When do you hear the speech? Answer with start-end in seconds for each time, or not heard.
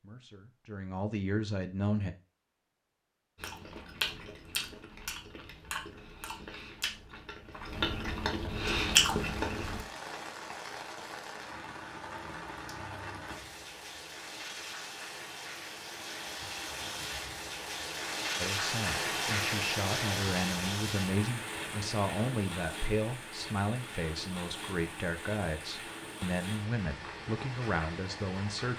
0.0-2.1, 18.4-28.7.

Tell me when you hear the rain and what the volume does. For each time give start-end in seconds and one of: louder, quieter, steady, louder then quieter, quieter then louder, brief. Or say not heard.
8.7-28.7 louder then quieter.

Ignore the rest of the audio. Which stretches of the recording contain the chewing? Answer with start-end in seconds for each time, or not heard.
3.4-9.8.